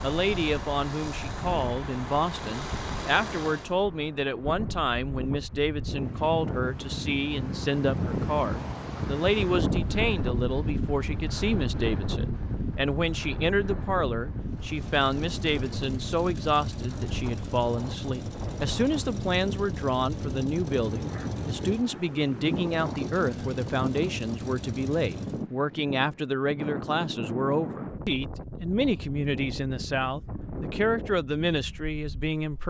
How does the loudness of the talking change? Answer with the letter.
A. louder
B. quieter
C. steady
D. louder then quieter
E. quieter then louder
C.